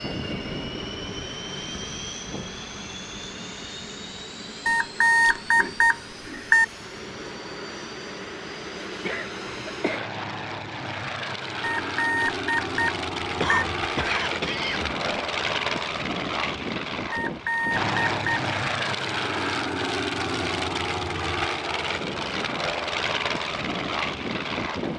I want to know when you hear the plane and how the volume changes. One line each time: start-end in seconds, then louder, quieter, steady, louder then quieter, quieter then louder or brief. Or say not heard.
0.0-24.9 louder.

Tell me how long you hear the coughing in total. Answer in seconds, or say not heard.
3 s.